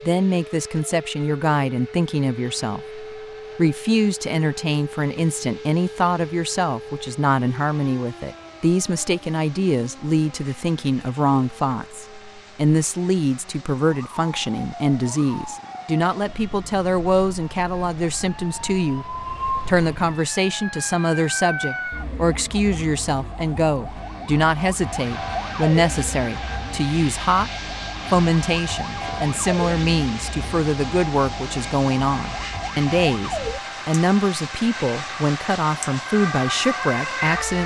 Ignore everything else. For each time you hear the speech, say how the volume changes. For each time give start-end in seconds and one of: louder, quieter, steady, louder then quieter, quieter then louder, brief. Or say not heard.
0.1-27.5 steady
28.1-37.6 steady.